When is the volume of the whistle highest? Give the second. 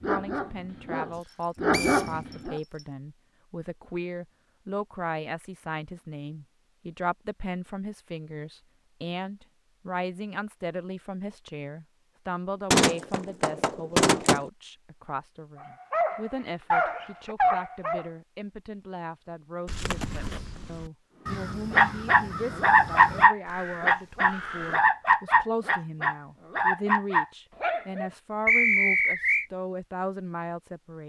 29 s.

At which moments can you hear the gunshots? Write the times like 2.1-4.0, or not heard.
12.7-14.5.